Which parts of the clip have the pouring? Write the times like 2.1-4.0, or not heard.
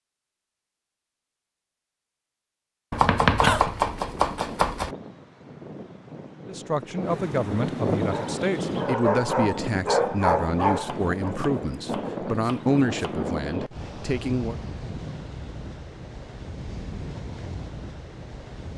not heard.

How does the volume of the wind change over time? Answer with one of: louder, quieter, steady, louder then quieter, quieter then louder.
louder then quieter.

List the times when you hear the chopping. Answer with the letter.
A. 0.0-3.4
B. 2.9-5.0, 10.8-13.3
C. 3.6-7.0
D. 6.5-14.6
B.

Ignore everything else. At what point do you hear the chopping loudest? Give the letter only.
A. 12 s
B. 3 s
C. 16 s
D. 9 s
B.